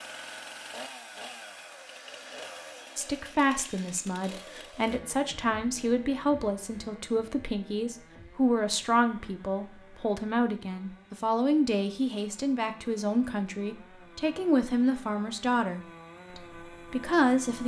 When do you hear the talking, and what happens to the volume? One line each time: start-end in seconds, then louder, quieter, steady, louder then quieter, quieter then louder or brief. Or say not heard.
3.0-17.6 steady.